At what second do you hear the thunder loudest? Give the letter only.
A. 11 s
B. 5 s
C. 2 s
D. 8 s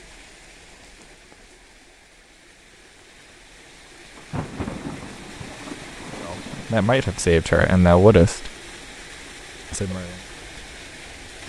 B.